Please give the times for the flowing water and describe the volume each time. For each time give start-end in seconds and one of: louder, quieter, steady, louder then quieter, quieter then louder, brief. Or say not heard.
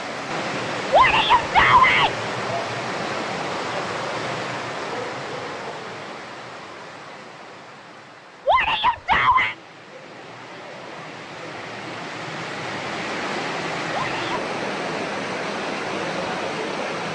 0.0-17.1 quieter then louder.